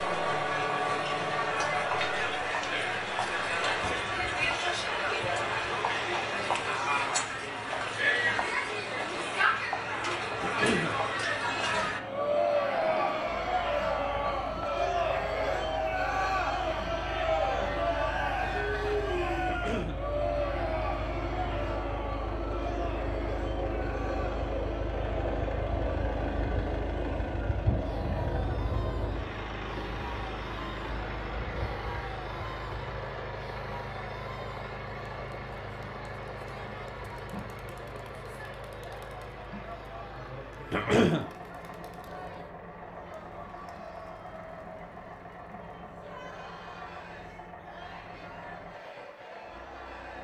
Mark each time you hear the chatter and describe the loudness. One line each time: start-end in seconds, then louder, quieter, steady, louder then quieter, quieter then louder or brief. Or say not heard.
0.0-50.1 quieter.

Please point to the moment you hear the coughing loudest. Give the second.
41 s.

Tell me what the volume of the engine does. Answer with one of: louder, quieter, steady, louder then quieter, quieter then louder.
louder then quieter.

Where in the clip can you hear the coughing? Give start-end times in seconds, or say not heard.
10.4-10.9, 19.4-20.0, 40.7-41.2.